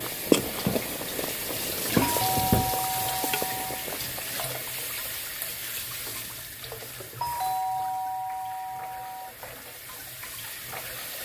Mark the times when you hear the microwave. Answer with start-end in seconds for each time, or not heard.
not heard.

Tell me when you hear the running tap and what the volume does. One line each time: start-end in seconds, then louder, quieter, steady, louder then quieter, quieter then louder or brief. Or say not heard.
0.0-11.1 quieter.